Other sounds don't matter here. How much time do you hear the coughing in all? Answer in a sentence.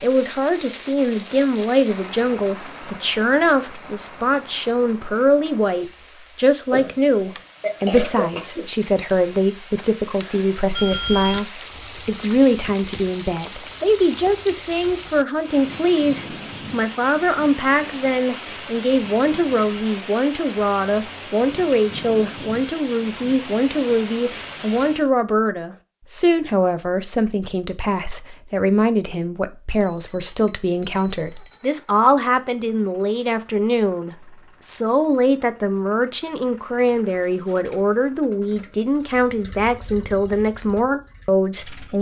The coughing can be heard for 2 seconds in total.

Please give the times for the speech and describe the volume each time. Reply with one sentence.
The speech can be heard from 0.0 to 41.9 s, at a steady volume.